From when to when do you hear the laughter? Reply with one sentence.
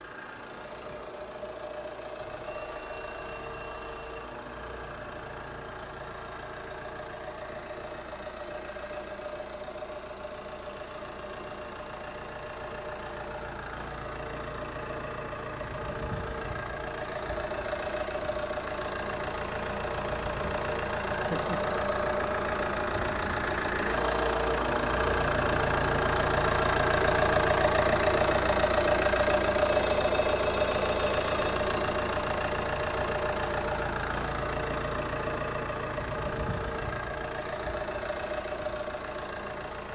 You can hear the laughter from 21.1 to 21.8 s.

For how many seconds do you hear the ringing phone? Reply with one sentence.
The ringing phone can be heard for 4 seconds in total.